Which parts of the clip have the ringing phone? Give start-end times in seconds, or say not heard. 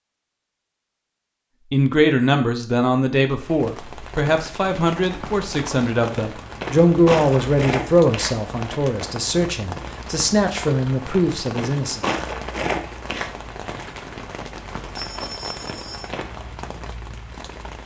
14.9-16.1.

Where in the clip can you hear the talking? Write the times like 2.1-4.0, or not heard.
1.7-12.1.